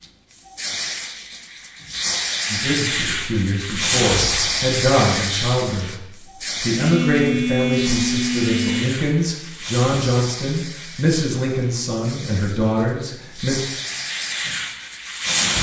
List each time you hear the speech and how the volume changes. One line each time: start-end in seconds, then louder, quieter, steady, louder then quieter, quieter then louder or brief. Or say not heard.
2.5-13.6 steady.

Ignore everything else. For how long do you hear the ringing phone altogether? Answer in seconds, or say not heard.
2 s.